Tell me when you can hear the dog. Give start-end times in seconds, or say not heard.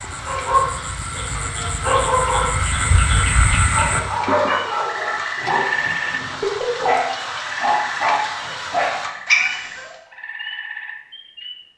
0.2-9.9.